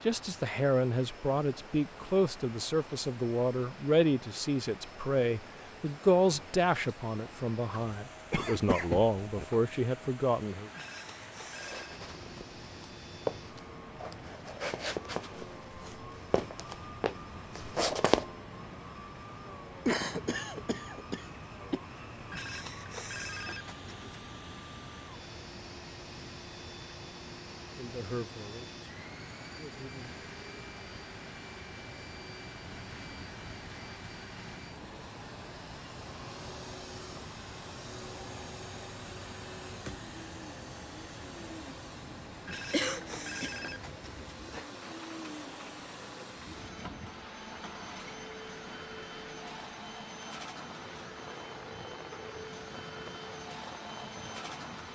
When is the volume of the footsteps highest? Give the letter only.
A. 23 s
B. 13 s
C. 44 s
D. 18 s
D.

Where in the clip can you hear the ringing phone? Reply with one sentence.
You can hear the ringing phone from 10.7 to 12.0 s, from 22.3 to 24.1 s and from 42.5 to 44.7 s.